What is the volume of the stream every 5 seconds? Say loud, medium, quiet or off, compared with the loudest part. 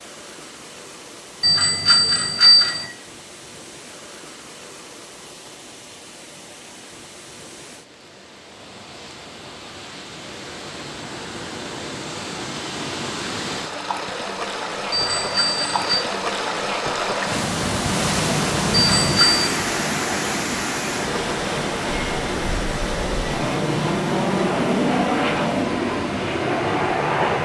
quiet, quiet, medium, loud, loud, medium.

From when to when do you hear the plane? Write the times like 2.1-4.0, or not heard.
21.9-27.3.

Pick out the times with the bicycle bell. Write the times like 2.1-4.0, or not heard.
1.4-2.9, 14.9-16.0, 18.9-19.5.